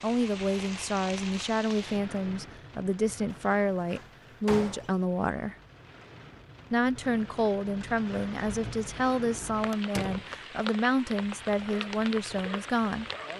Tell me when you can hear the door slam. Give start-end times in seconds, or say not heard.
3.2-5.0, 9.7-10.3.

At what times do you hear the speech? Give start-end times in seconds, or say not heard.
0.0-5.5, 6.7-13.1.